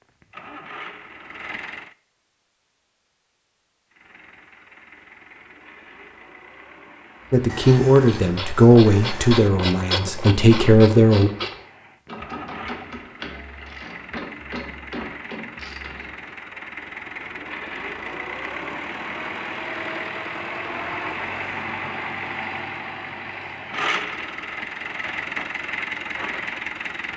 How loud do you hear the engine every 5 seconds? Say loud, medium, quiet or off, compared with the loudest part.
medium, quiet, medium, loud, loud, loud.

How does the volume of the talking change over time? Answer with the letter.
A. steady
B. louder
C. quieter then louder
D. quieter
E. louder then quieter
C.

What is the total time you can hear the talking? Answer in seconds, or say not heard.
4 s.